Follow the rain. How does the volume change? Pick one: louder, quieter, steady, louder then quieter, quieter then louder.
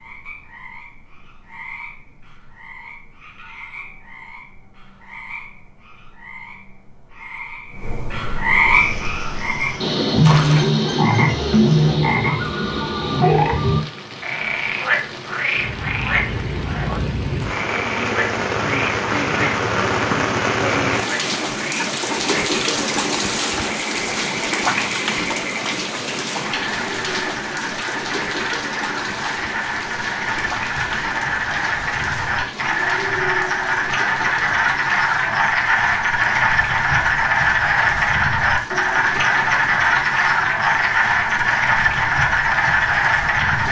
louder then quieter.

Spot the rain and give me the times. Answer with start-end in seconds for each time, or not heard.
8.7-43.6.